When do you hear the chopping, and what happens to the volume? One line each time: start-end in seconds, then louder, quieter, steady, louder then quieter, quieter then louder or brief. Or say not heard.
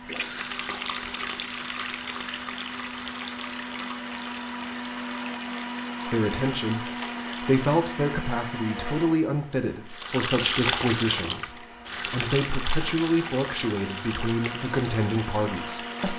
not heard.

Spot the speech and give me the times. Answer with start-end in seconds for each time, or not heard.
6.0-16.1.